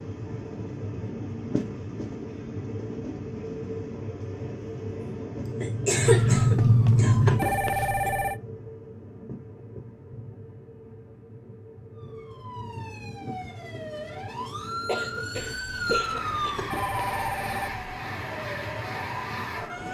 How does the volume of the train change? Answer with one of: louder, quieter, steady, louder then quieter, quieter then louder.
quieter then louder.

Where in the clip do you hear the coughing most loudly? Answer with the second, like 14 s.
6 s.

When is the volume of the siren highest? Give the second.
7 s.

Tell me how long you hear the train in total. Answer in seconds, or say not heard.
20 s.